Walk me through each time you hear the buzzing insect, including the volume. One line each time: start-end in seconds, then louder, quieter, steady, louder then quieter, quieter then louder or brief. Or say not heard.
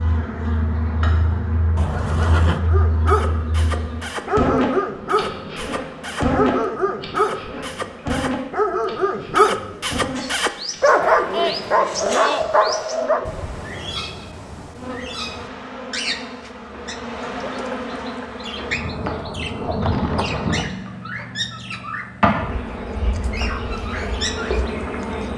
0.0-25.3 quieter then louder.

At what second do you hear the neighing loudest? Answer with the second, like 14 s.
2 s.